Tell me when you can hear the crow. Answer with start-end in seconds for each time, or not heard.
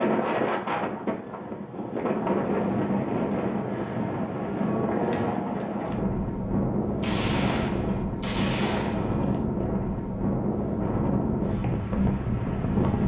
not heard.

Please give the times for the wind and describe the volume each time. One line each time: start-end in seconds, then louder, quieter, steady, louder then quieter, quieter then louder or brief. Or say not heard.
0.0-13.0 steady.